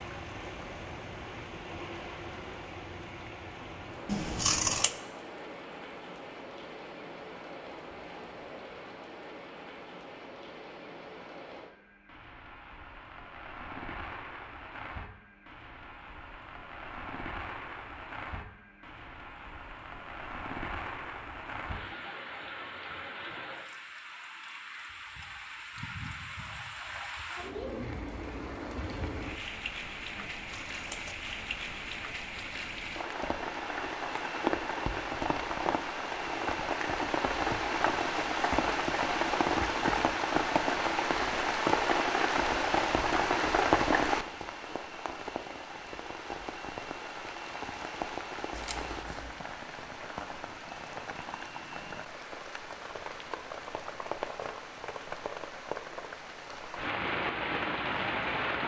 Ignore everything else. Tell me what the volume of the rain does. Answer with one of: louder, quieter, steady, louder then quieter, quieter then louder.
louder then quieter.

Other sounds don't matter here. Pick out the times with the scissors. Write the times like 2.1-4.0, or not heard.
4.0-4.9, 30.1-31.1, 48.5-49.4.